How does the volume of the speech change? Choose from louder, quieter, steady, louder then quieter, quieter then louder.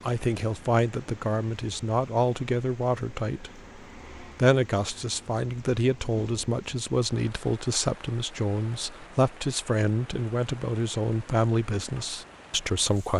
steady.